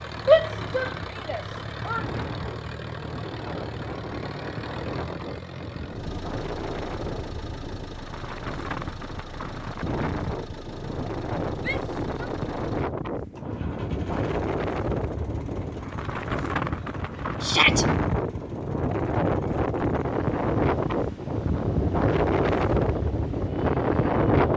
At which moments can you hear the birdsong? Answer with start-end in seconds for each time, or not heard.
not heard.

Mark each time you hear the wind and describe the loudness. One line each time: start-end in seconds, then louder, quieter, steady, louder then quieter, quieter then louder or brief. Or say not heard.
0.0-24.5 louder.